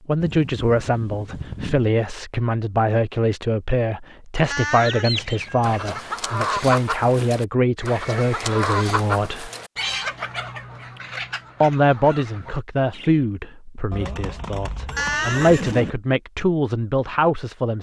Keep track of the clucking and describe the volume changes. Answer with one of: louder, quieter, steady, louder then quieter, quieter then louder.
quieter.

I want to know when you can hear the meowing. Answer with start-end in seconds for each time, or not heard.
4.5-6.0, 14.9-15.7.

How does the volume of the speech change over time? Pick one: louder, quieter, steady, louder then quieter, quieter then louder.
steady.